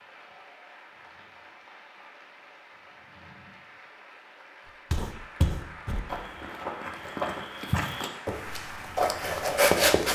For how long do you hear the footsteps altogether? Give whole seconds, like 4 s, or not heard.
5 s.